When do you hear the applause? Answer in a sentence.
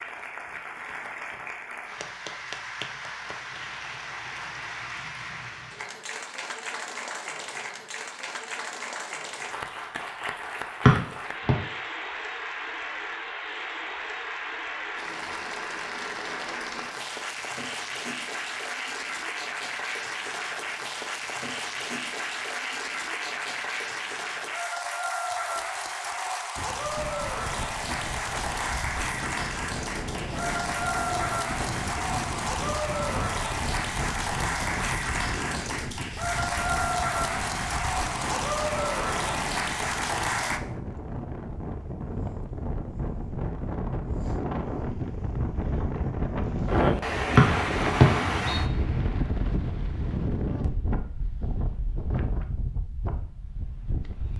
The applause can be heard from 0.0 to 40.6 s.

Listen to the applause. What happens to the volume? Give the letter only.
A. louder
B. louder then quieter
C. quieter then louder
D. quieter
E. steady
A.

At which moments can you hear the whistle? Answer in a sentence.
The whistle can be heard from 10.8 to 11.6 s and from 47.4 to 48.6 s.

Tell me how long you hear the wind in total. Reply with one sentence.
You can hear the wind for 28 seconds altogether.